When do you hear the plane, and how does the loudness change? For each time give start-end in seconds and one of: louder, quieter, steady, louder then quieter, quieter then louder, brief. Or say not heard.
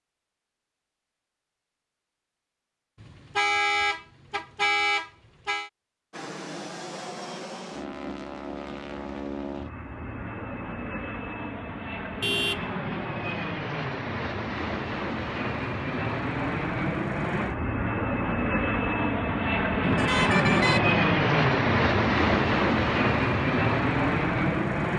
6.1-24.9 louder.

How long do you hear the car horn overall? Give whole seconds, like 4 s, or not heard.
4 s.